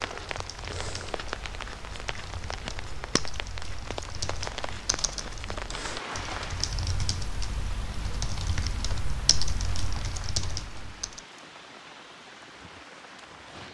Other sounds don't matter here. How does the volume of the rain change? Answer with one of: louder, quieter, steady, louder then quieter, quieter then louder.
quieter.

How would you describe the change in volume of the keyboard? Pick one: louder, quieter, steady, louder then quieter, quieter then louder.
louder.